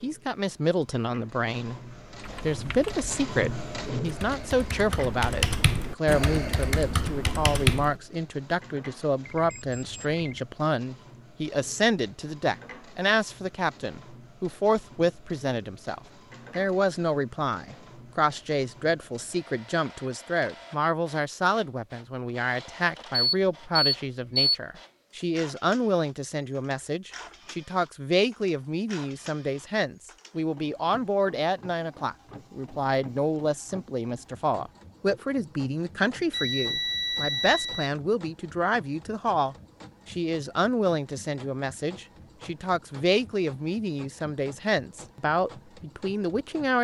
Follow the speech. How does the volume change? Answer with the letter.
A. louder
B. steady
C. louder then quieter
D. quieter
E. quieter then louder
B.